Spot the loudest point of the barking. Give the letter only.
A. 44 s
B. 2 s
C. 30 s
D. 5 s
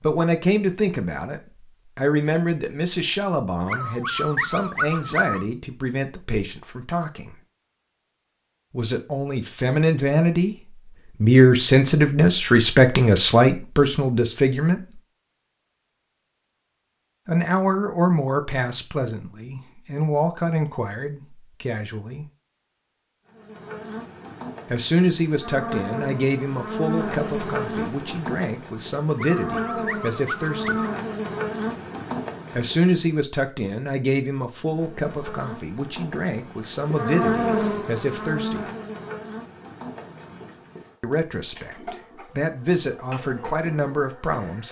D.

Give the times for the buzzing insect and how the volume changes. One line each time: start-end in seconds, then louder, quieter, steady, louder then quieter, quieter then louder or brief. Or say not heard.
23.2-33.1 louder
34.6-44.6 louder then quieter.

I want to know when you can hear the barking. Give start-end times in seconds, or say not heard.
3.6-5.5, 29.1-30.9.